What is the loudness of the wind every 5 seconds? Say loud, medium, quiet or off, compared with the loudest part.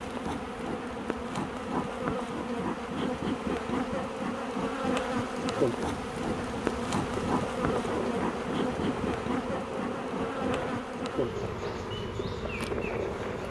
off, loud, loud.